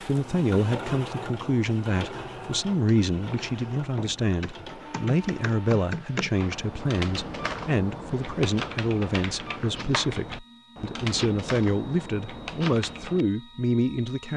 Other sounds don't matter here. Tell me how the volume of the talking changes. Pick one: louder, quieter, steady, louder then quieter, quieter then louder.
steady.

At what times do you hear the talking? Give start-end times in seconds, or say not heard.
0.1-14.3.